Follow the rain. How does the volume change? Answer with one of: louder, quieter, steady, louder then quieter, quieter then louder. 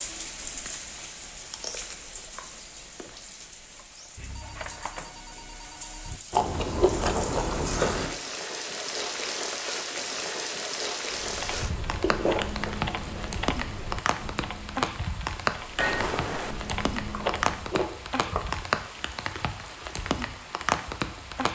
louder.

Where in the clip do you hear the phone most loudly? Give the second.
16 s.